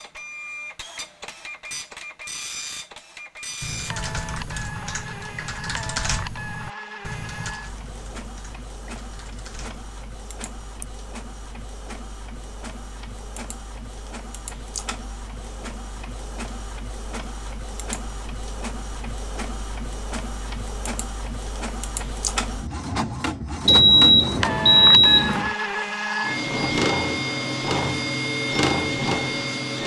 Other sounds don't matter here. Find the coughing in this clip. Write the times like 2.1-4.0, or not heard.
not heard.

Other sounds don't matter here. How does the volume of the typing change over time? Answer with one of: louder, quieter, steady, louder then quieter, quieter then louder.
quieter.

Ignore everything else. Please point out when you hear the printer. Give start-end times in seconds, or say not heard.
0.0-29.8.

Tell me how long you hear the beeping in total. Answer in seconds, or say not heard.
2 s.